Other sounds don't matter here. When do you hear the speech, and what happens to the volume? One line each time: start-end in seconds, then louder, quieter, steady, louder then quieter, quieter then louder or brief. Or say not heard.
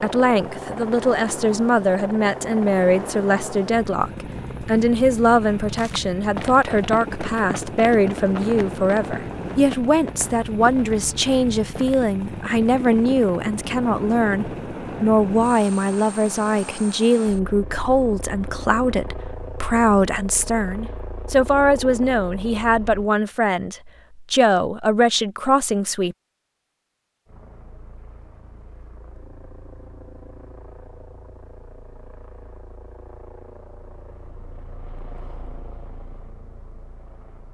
0.0-26.1 steady.